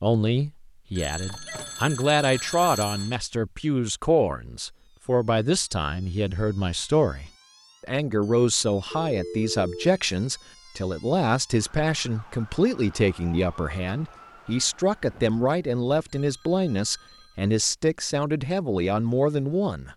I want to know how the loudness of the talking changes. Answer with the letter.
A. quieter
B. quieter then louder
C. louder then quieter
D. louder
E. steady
E.